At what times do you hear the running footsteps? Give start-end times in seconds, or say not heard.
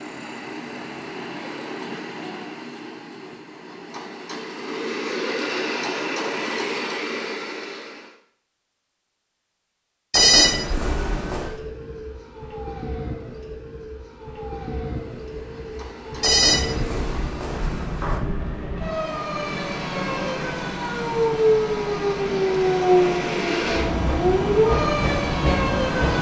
not heard.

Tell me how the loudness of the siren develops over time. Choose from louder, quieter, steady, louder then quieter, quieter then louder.
louder.